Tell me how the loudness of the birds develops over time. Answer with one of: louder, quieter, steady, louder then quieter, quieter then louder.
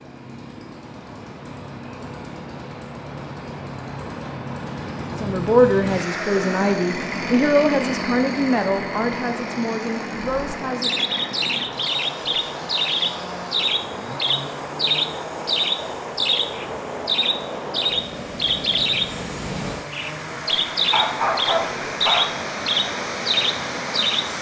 steady.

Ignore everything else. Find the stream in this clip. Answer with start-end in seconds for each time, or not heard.
0.0-24.3.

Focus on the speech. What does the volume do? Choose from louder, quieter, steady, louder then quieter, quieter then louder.
quieter.